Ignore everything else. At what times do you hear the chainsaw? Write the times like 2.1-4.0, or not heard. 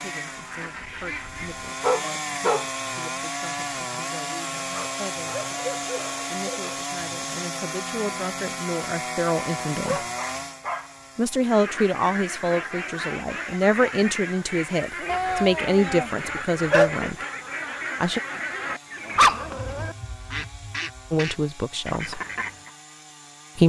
0.0-23.6.